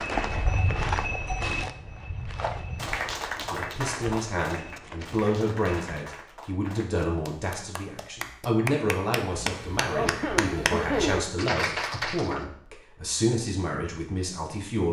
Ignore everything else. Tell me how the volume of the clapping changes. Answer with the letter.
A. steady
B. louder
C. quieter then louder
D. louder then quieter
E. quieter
C.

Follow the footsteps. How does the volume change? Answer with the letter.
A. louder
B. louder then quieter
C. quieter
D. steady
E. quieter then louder
C.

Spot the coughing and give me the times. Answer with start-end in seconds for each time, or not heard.
9.9-11.2.